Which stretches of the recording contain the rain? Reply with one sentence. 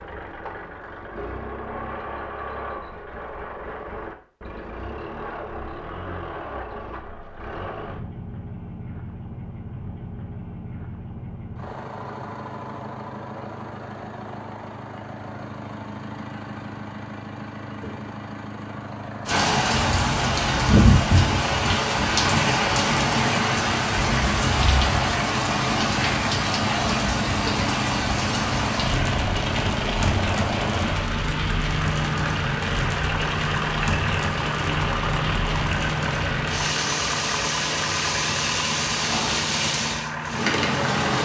You can hear the rain from 19.2 to 41.2 s.